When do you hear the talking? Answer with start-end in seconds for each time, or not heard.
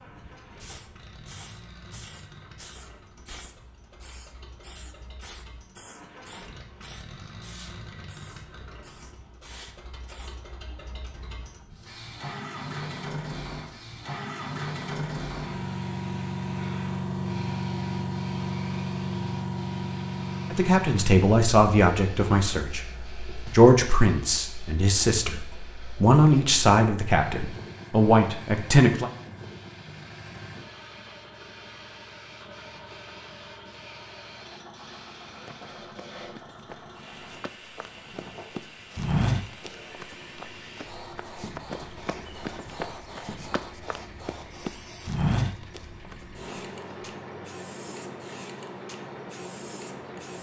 20.5-29.1.